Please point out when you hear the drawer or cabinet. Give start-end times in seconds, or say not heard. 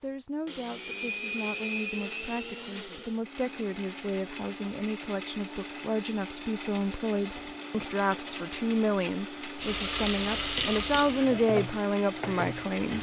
not heard.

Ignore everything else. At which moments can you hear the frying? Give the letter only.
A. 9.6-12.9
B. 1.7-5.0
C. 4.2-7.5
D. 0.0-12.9
A.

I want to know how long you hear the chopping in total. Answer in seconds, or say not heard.
not heard.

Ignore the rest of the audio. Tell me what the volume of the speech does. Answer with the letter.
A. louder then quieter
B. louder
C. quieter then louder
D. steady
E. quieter
B.